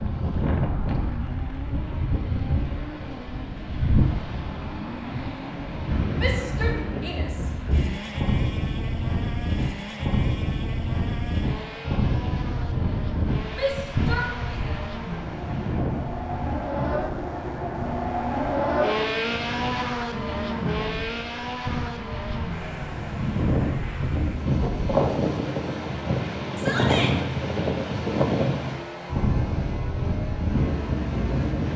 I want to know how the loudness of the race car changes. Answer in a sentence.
The volume of the race car goes up, then down.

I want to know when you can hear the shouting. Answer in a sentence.
You can hear the shouting from 6.2 to 7.5 s, from 13.5 to 14.8 s and from 26.6 to 27.1 s.